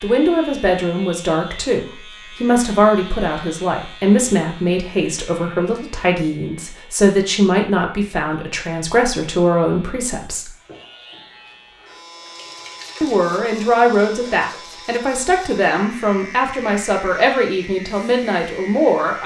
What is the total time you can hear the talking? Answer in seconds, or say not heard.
17 s.